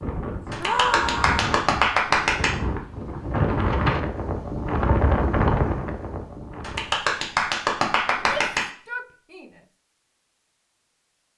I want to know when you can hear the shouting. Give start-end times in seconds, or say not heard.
0.6-1.4, 8.1-9.5.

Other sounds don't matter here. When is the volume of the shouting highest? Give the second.
1 s.